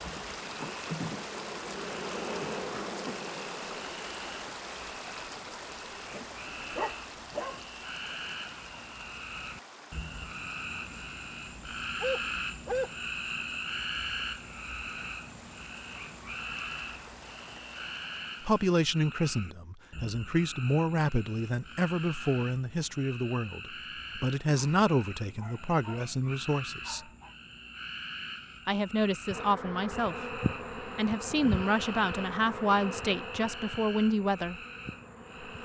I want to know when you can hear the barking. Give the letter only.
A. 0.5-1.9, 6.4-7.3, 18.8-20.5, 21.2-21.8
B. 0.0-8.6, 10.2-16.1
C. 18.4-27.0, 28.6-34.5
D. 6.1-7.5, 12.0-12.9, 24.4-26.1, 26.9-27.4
D.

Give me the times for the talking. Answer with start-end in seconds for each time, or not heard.
18.4-27.0, 28.6-34.5.